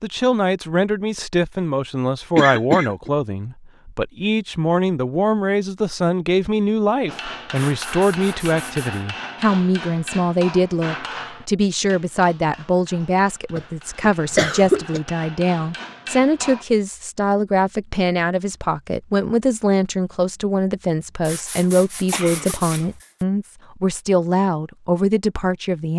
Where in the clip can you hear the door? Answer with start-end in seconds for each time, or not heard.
not heard.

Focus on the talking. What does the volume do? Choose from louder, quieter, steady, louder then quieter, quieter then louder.
steady.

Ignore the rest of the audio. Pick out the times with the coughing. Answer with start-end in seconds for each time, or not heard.
2.4-3.1, 13.6-15.0, 22.1-22.9.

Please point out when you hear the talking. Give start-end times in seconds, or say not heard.
0.0-25.9.